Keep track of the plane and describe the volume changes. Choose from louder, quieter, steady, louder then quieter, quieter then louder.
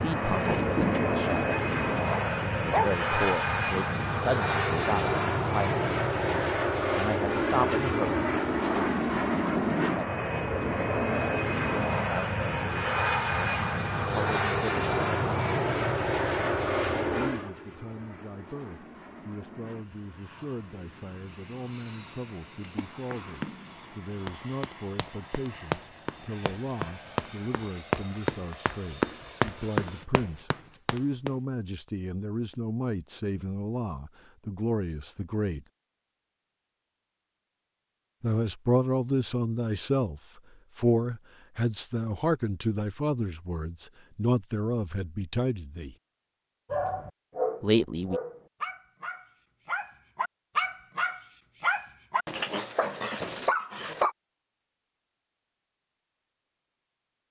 quieter.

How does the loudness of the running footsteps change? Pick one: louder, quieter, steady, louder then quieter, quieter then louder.
louder.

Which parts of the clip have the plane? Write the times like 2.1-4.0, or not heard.
0.0-30.1.